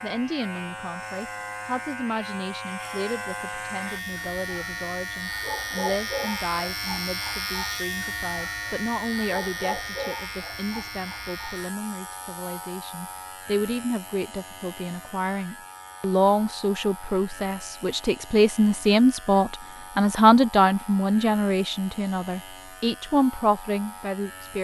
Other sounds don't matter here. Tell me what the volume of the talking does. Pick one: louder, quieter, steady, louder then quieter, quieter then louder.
louder.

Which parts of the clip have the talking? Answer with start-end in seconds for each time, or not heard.
0.0-24.5.